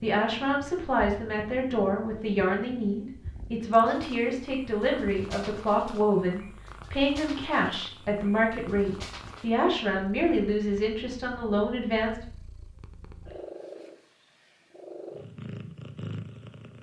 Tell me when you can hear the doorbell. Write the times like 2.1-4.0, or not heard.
not heard.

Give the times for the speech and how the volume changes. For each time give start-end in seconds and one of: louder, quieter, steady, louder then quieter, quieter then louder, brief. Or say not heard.
0.0-12.2 steady.